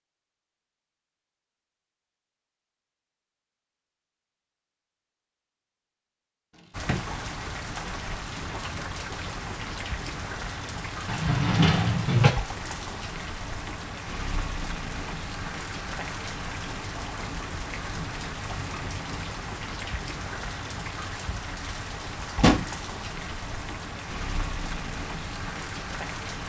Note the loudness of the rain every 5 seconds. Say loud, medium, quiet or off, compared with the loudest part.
off, loud, loud, loud, loud, loud.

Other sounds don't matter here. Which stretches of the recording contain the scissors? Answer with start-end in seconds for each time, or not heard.
not heard.